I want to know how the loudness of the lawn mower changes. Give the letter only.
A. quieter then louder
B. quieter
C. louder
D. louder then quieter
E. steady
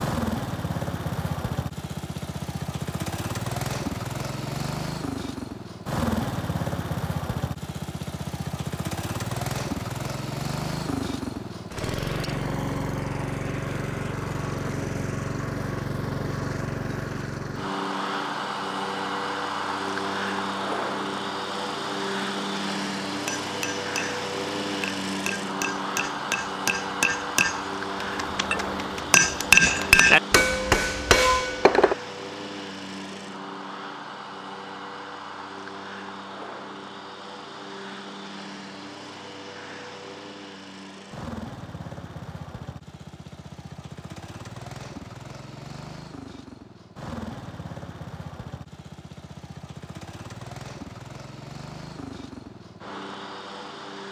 B.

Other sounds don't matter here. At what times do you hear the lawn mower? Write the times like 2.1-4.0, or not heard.
0.0-54.0.